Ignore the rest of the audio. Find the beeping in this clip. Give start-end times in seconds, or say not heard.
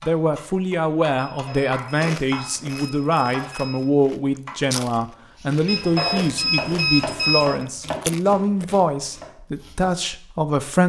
1.1-3.9, 5.7-7.7.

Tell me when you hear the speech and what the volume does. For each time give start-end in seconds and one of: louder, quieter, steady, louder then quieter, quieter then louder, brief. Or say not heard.
0.0-10.8 steady.